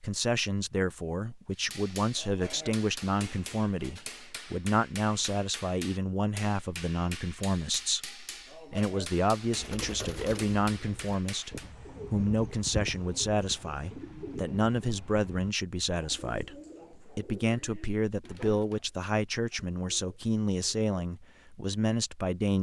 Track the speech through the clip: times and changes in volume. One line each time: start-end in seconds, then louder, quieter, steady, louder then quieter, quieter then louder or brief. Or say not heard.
0.0-22.5 steady.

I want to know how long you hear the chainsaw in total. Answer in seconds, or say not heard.
not heard.